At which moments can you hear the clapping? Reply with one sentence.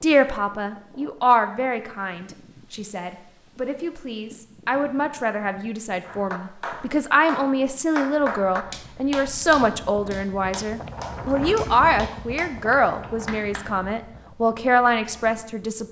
The clapping can be heard from 6.0 to 13.7 s.